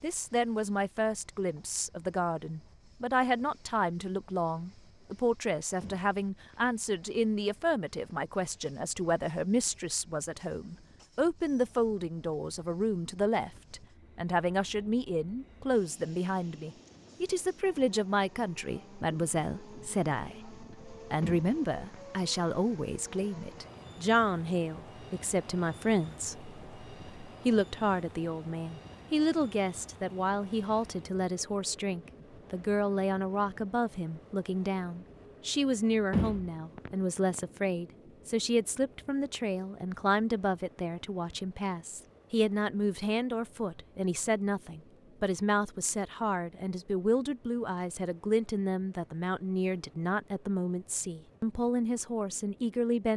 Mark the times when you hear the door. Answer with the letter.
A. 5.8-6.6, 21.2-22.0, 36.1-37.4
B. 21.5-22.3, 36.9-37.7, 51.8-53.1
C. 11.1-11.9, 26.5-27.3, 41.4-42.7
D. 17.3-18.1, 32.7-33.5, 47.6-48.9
A.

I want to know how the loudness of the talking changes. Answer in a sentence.
The volume of the talking stays about the same.